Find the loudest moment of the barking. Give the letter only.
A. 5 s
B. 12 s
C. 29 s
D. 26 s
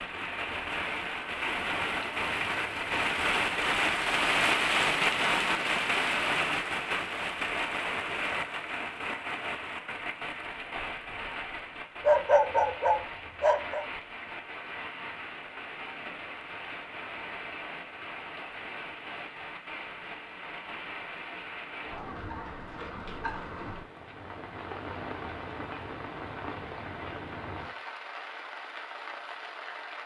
B.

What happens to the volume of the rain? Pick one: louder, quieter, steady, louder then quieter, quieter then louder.
quieter.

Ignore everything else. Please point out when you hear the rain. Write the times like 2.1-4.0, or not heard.
0.0-30.0.